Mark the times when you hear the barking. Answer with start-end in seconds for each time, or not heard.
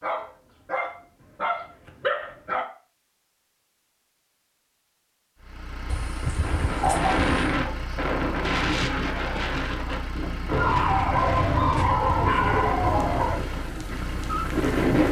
0.0-2.6, 5.9-7.3, 10.5-13.4.